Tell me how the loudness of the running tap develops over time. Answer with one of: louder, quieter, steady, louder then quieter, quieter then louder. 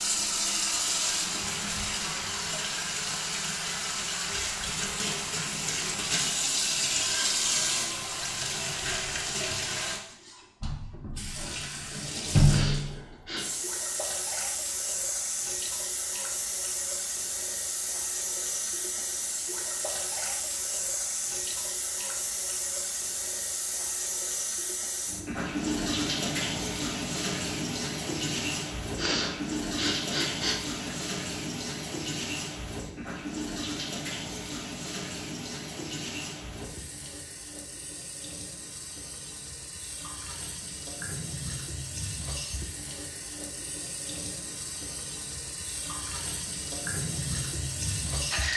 quieter.